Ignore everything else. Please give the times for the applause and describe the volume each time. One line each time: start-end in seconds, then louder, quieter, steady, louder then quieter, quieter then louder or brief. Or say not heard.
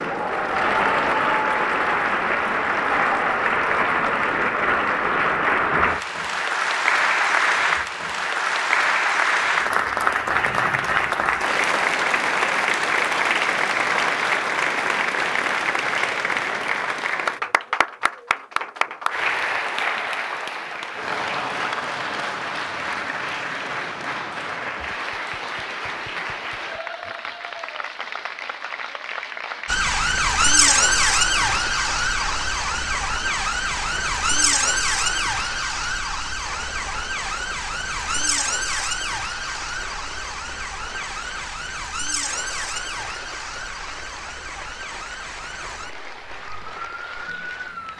0.0-47.9 quieter.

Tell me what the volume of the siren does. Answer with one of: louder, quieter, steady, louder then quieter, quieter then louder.
quieter.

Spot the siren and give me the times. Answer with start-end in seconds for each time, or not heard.
29.6-47.9.